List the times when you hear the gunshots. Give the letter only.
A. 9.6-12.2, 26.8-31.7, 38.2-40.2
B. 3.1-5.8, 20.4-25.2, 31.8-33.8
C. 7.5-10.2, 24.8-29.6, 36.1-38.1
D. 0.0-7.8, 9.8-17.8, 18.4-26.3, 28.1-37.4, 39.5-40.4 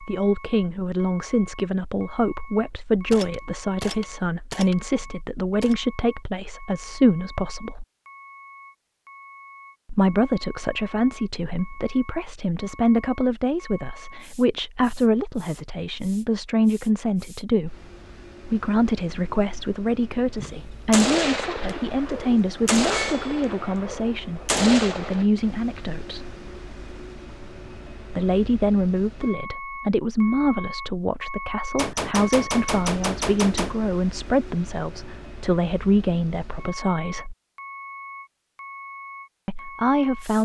B.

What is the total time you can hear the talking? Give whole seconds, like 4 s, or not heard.
34 s.